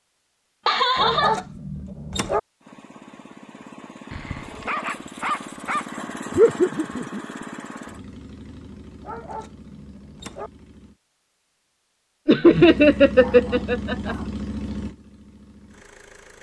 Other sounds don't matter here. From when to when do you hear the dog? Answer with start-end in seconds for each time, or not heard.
0.9-2.4, 4.1-5.9, 9.0-10.5, 13.2-14.3.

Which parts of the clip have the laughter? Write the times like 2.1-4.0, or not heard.
0.7-1.4, 6.3-7.2, 12.2-14.2.